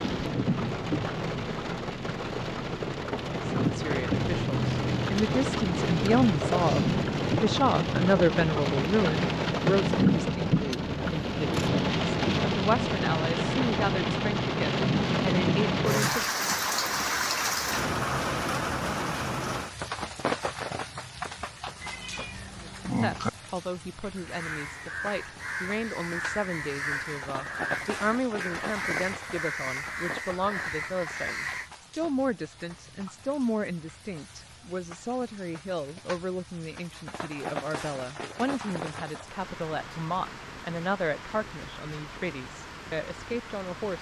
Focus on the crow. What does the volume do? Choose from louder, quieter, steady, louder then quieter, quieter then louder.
steady.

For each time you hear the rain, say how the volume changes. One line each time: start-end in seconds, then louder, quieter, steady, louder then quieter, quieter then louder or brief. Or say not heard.
0.0-43.9 quieter.